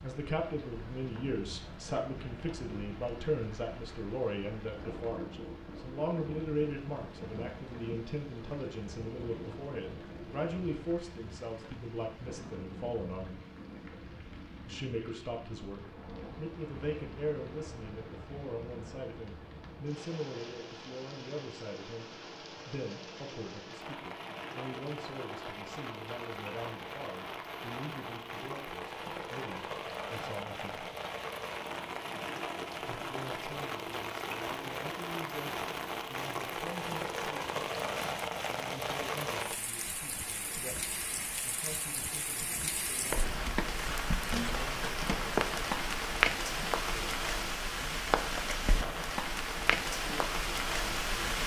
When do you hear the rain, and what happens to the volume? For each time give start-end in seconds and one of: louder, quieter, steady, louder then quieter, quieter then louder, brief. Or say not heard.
0.0-51.4 louder.